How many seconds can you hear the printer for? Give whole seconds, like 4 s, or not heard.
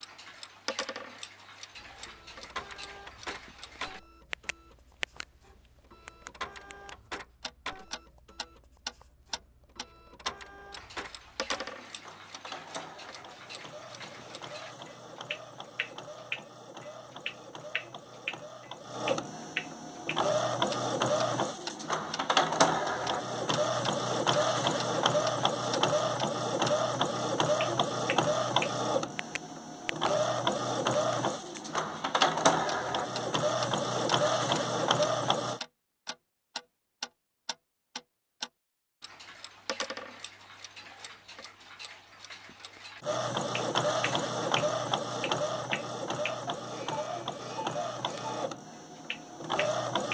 41 s.